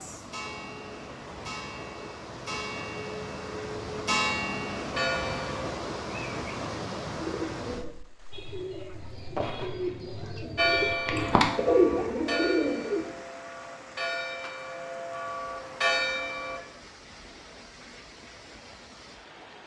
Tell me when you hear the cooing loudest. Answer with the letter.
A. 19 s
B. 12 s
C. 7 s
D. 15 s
B.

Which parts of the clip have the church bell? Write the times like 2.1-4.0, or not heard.
0.0-5.7, 10.6-16.6.